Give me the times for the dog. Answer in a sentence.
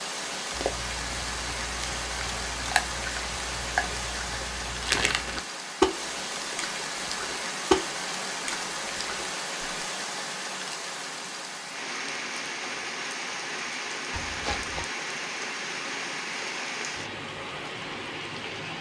You can't hear the dog here.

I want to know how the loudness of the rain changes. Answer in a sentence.
The loudness of the rain stays about the same.